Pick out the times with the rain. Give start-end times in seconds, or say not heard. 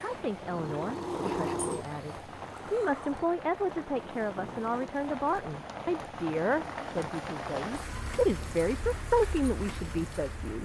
0.0-10.6.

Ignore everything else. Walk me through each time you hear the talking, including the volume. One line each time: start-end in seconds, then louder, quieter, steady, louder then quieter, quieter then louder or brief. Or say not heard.
0.0-10.6 louder.